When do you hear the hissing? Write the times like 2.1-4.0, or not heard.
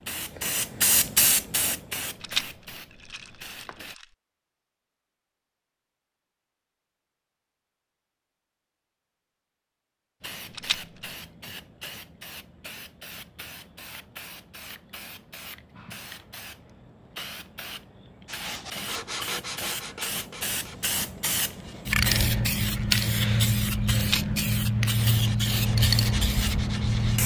0.0-4.0, 10.2-27.2.